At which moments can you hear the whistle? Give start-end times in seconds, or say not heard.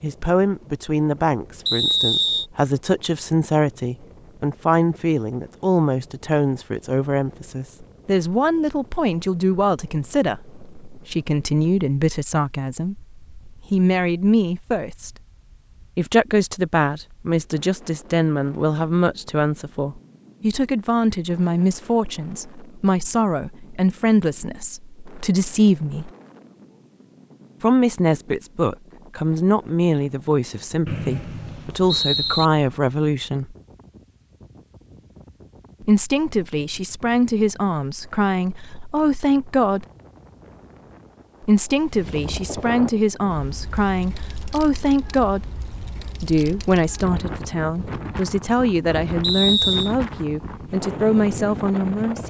1.6-2.5, 30.9-32.5, 49.2-50.0.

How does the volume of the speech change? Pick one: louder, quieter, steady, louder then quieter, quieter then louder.
steady.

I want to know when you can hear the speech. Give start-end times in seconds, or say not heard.
0.0-15.1, 15.9-26.1, 27.6-33.5, 35.8-39.9, 41.4-45.5, 46.2-52.2.